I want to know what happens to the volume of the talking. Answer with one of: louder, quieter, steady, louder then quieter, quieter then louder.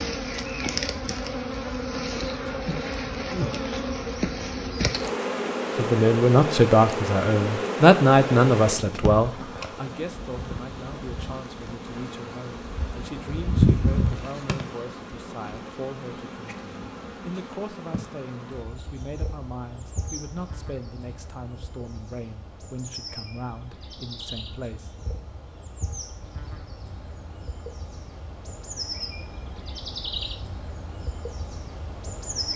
quieter.